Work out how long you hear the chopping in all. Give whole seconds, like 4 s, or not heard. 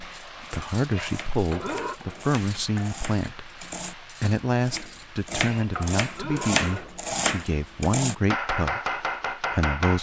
10 s.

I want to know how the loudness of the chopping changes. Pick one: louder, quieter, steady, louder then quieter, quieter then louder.
louder.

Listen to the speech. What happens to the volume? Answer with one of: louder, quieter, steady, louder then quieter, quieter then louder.
steady.